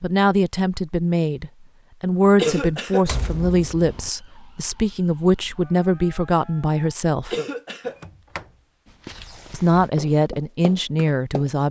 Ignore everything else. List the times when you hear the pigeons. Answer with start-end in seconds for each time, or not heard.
not heard.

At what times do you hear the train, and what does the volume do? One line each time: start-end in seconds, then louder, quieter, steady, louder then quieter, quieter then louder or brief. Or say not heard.
not heard.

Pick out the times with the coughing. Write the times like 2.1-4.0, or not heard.
2.4-3.0, 7.3-8.0.